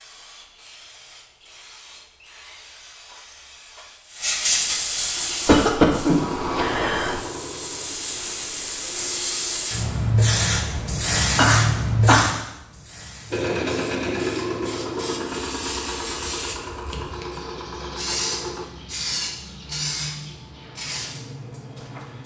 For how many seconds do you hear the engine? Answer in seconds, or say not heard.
10 s.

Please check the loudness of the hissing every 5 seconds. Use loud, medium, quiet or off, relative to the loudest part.
medium, medium, loud, medium, medium.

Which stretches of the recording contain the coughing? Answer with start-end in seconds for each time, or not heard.
5.5-7.2, 11.3-12.3.